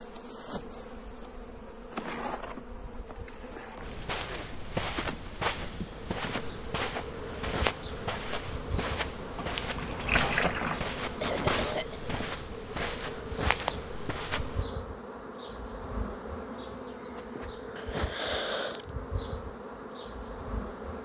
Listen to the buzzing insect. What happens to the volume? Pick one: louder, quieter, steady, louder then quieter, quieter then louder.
steady.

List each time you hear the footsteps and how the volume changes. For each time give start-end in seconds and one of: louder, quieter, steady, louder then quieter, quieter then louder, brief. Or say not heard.
3.8-14.7 steady.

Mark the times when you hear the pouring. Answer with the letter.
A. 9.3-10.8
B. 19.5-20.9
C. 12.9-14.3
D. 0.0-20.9
A.